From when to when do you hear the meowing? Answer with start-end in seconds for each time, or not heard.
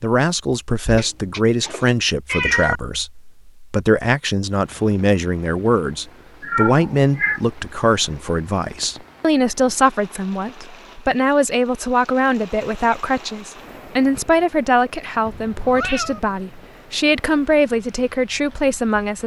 0.8-2.8, 6.4-7.4, 15.2-16.2.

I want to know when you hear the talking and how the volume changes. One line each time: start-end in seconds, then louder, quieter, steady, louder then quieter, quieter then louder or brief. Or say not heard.
0.0-19.2 steady.